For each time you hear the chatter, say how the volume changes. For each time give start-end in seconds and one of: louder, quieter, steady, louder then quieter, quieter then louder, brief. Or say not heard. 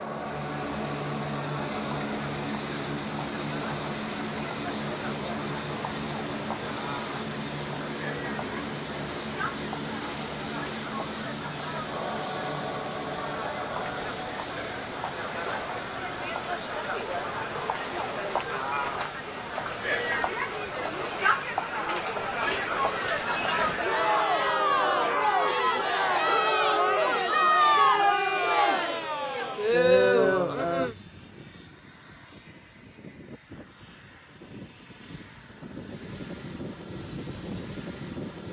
0.0-30.9 louder.